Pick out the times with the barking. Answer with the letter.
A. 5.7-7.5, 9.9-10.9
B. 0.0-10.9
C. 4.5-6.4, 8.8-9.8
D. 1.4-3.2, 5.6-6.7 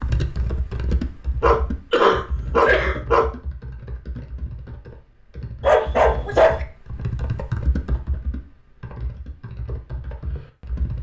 D.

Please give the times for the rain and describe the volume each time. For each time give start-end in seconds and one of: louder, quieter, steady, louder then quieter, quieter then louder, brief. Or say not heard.
not heard.